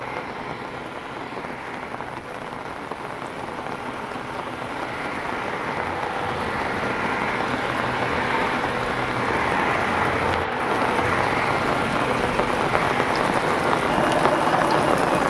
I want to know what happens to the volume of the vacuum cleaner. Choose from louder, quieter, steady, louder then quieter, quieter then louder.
louder.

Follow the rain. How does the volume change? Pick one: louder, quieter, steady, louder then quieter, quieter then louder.
louder.